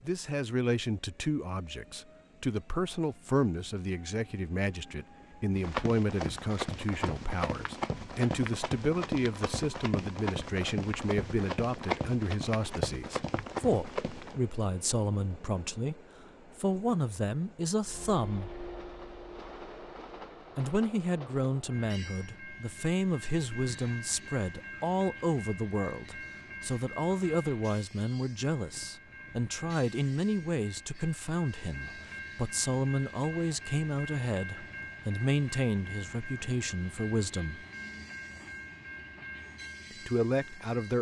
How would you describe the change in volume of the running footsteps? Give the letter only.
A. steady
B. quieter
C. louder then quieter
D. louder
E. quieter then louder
A.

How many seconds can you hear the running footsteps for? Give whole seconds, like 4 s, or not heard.
9 s.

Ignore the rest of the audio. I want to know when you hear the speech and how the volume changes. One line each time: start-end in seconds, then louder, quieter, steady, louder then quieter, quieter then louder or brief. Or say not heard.
0.0-18.5 steady
20.6-37.6 steady
39.9-40.9 brief.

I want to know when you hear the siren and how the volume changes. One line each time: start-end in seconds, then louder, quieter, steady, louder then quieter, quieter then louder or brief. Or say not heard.
not heard.